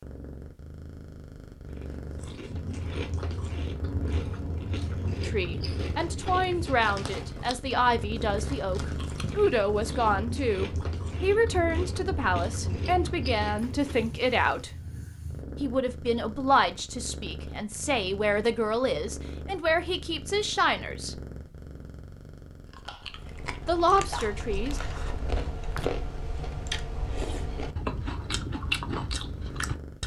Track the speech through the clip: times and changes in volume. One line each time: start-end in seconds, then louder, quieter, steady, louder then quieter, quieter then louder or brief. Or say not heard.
5.2-14.7 steady
15.6-21.1 quieter then louder
23.6-24.8 brief.